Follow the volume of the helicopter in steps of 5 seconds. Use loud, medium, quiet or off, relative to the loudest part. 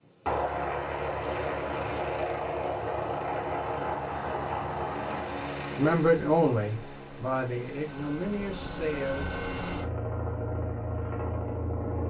loud, medium, loud.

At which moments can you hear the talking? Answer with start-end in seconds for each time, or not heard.
5.8-9.3.